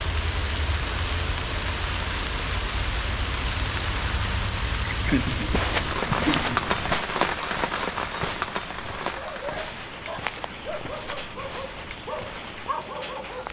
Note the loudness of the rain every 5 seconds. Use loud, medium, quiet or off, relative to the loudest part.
loud, loud, medium.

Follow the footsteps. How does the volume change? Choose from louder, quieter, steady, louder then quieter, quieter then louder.
quieter.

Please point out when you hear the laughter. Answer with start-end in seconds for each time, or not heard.
4.9-6.6.